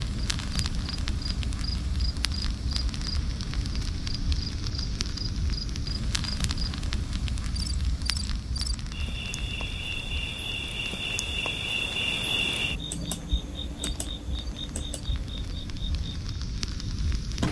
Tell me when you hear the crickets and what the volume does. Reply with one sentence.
You can hear the crickets from 0.0 to 17.4 s, getting louder then quieter.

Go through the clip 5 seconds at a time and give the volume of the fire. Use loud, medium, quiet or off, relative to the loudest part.
loud, loud, medium, loud.